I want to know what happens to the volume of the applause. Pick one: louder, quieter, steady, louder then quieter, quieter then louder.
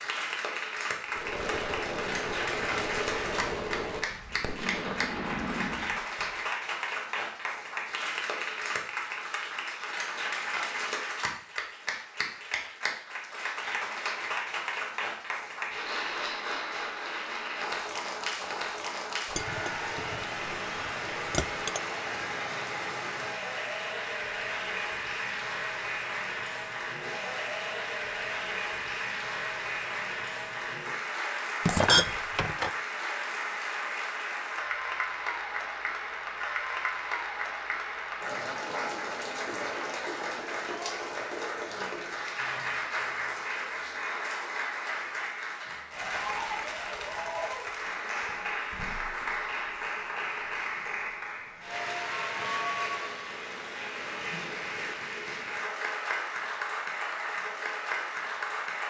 steady.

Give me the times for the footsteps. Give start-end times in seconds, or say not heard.
not heard.